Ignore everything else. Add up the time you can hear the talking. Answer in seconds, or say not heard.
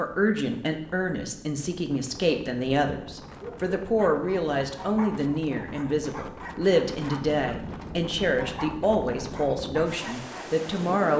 11 s.